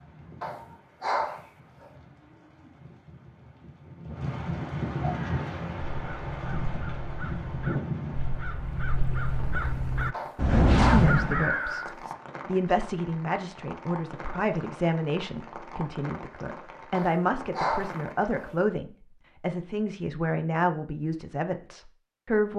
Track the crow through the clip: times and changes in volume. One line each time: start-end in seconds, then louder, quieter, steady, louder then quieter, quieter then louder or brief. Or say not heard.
5.2-11.9 louder.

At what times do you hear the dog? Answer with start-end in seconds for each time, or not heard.
0.4-1.9, 10.1-11.8, 16.9-18.6.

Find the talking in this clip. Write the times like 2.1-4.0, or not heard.
10.7-11.8, 12.4-22.5.